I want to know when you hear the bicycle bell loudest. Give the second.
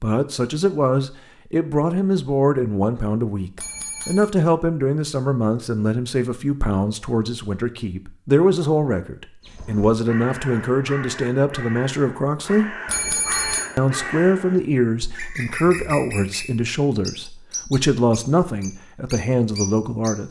13 s.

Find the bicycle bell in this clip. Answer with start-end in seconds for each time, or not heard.
3.5-4.3, 12.8-13.7.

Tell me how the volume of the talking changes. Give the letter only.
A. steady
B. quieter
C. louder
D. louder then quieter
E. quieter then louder
A.